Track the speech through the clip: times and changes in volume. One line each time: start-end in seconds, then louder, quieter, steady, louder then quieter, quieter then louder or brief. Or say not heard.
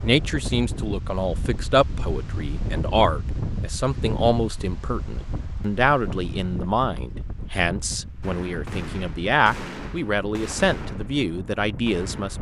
0.0-12.3 steady.